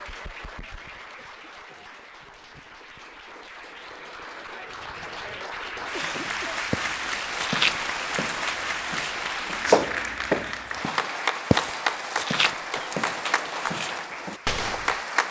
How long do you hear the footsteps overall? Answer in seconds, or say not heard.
8 s.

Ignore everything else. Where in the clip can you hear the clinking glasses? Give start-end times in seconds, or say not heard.
not heard.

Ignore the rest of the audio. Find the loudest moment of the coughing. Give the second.
6 s.